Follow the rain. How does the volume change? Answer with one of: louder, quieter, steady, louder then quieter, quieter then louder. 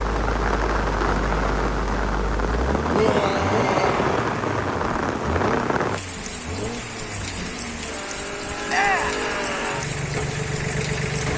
quieter.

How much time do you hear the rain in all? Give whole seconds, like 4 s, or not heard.
11 s.